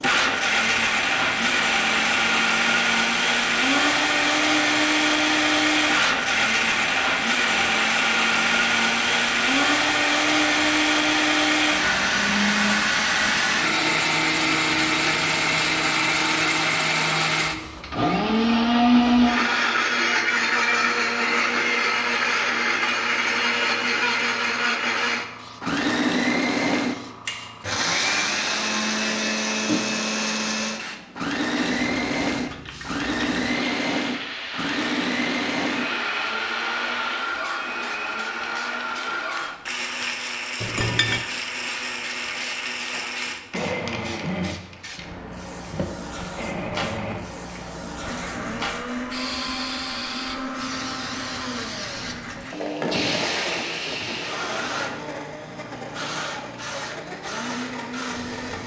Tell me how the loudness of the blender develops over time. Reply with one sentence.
The loudness of the blender goes down.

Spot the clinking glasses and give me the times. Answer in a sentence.
The clinking glasses can be heard from 40.6 to 41.2 s.